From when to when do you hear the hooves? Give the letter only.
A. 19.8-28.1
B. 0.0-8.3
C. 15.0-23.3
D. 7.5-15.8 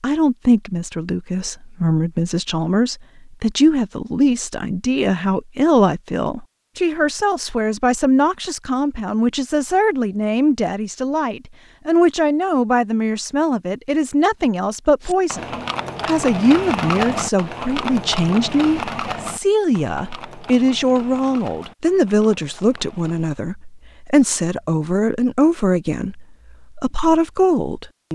C.